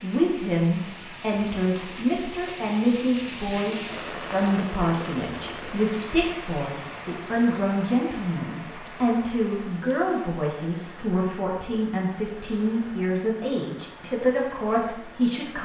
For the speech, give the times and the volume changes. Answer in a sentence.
You can hear the speech from 0.0 to 15.6 s, at a steady volume.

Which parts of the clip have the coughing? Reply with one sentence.
The coughing can't be heard in this clip.